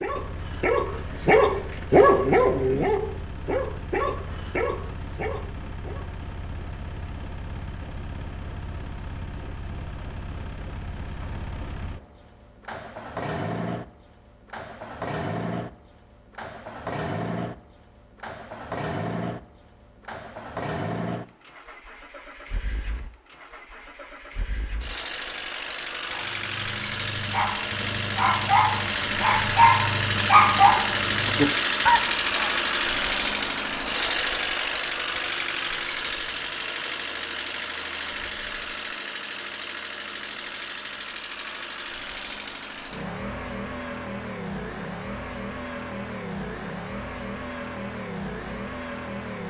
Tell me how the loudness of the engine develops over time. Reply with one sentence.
The volume of the engine goes up, then down.